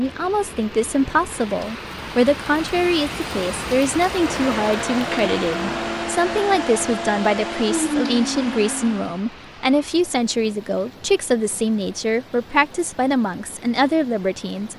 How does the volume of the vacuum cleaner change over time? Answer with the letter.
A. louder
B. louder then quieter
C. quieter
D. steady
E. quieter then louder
D.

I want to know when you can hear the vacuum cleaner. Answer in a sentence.
The vacuum cleaner can be heard from 4.0 to 9.2 s.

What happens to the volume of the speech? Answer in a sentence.
The loudness of the speech stays about the same.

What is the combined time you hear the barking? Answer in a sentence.
You can't hear the barking here.